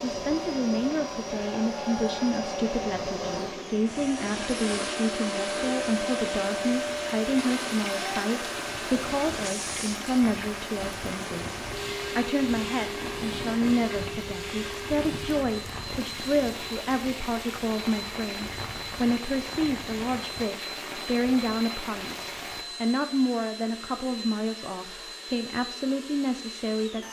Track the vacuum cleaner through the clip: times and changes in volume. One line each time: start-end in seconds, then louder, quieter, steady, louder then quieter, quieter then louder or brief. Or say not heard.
0.0-27.0 quieter.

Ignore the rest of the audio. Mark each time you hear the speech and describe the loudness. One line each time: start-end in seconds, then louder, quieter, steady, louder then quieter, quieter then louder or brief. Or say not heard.
0.0-27.0 steady.